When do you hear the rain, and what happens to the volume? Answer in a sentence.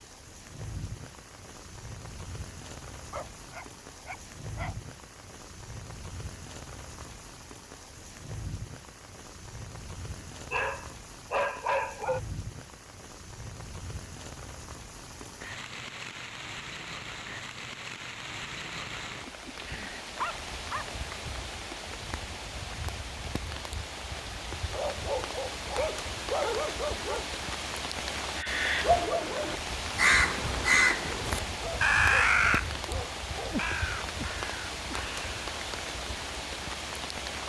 You can hear the rain from 0.0 to 37.4 s, getting louder.